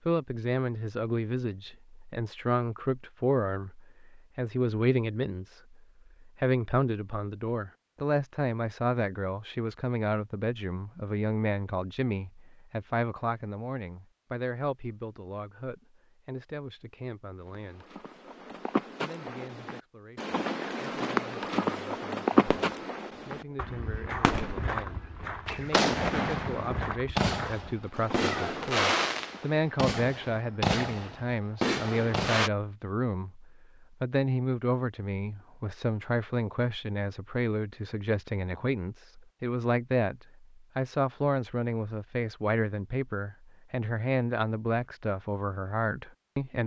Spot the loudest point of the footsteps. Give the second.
22 s.